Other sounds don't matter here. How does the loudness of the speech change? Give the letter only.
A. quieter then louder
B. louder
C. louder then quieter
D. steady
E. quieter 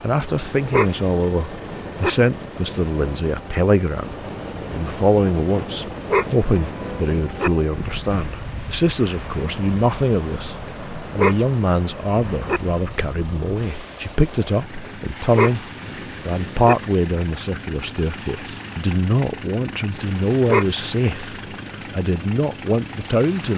D.